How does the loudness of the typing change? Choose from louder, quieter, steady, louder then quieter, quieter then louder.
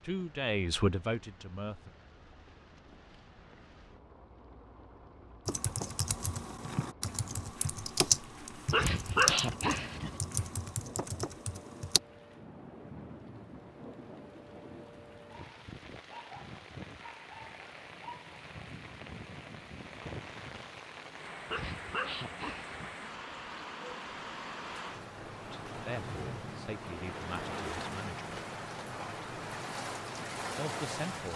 louder then quieter.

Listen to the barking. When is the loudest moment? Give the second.
9 s.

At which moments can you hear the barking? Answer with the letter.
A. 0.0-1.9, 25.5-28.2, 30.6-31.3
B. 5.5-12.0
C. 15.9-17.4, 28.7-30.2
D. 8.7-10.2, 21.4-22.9
D.